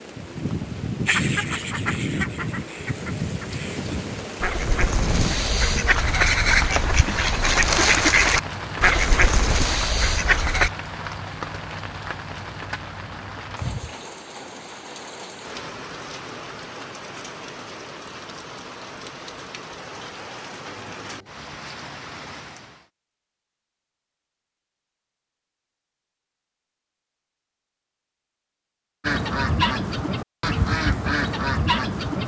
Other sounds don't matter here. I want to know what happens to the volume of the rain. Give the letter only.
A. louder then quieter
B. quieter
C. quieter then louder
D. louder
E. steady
B.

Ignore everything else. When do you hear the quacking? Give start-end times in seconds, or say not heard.
1.1-10.7, 29.0-32.2.